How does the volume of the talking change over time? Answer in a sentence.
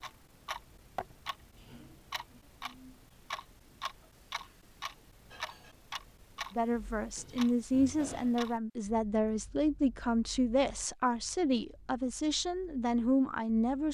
The volume of the talking stays about the same.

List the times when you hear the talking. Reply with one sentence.
You can hear the talking from 6.5 to 13.8 s.